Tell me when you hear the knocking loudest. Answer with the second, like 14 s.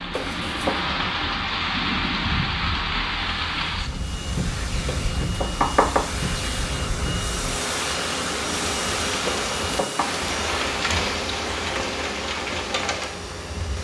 6 s.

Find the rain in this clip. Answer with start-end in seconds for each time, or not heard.
0.0-13.8.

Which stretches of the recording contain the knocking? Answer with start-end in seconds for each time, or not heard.
0.1-0.8, 4.8-6.0, 9.2-10.1.